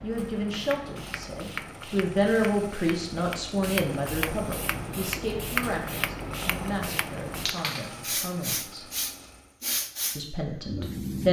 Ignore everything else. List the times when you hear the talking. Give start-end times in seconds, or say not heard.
0.0-8.9, 10.2-11.2.